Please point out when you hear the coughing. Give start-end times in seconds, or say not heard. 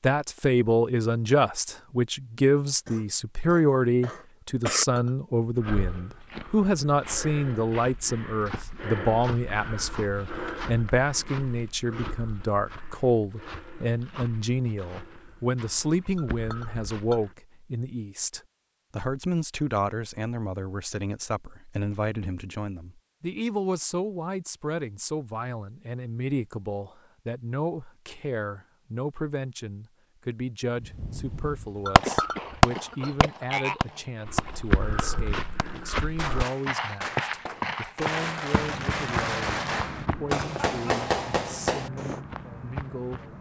2.9-4.8, 32.0-34.0.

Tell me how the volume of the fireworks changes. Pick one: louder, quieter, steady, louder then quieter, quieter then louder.
quieter then louder.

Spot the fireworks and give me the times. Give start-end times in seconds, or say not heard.
30.9-42.2.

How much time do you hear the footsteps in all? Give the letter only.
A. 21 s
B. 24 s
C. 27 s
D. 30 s
A.